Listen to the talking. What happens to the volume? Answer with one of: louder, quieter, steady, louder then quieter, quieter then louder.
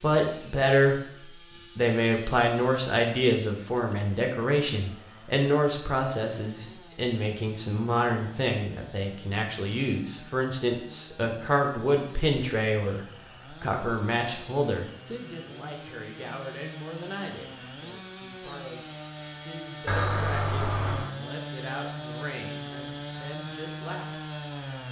quieter.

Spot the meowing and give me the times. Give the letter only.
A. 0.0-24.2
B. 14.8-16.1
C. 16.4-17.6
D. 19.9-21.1
D.